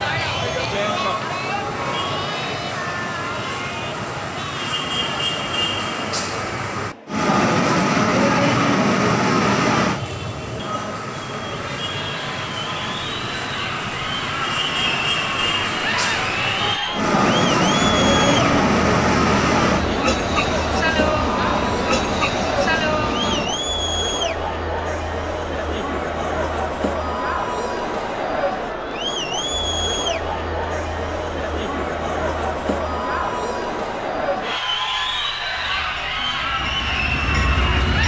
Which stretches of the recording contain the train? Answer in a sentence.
You can hear the train from 0.0 to 23.6 s and from 35.5 to 38.0 s.